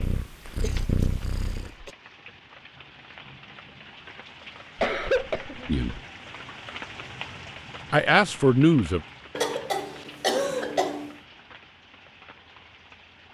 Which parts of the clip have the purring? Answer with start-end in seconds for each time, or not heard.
0.0-1.8.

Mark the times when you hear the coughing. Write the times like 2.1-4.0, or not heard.
0.5-1.9, 4.8-5.8, 9.3-11.1.